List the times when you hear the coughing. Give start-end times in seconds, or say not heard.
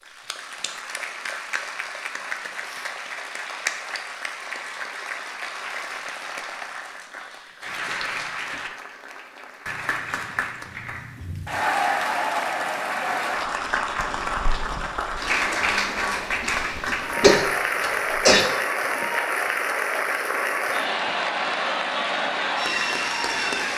16.4-18.4.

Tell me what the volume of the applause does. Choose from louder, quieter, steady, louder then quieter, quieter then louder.
louder.